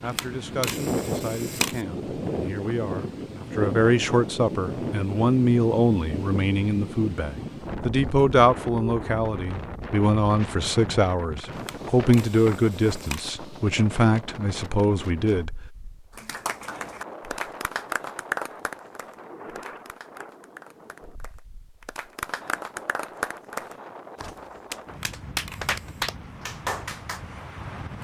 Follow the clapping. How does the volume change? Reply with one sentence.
The volume of the clapping goes down, then up.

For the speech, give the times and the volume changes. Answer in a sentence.
The speech can be heard from 0.0 to 15.6 s, getting louder.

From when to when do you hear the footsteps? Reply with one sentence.
The footsteps can't be heard in this clip.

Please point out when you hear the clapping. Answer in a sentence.
The clapping can be heard from 16.1 to 27.2 s.